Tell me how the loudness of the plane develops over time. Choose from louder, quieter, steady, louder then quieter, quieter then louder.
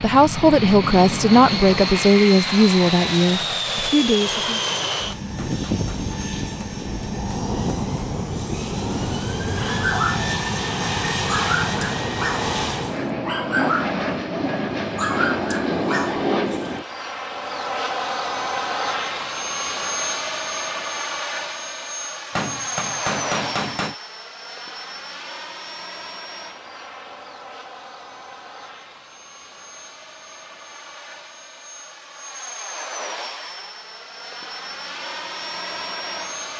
quieter.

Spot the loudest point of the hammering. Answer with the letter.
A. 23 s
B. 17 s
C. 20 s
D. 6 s
A.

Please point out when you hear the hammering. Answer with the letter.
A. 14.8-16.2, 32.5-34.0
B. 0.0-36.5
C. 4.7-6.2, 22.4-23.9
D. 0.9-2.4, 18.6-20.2
C.